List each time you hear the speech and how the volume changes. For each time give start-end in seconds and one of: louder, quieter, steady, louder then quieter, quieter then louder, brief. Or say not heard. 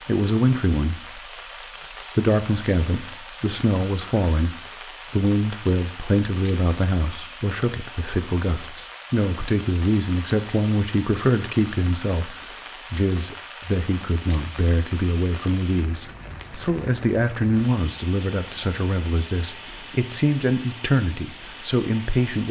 0.1-1.3 brief
2.1-22.4 steady.